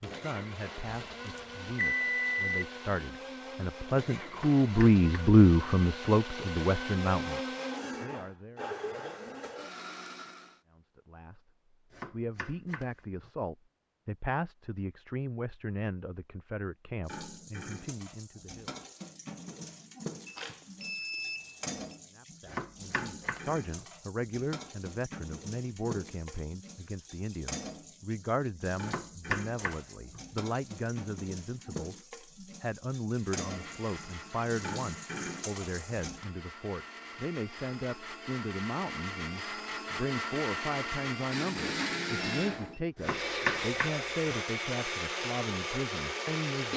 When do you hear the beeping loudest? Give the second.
2 s.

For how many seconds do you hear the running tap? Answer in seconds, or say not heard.
19 s.